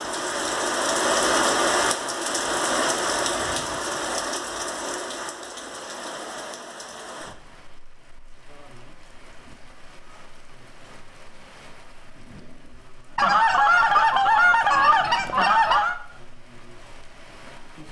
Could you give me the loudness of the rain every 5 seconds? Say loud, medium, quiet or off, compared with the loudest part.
loud, quiet, quiet, quiet.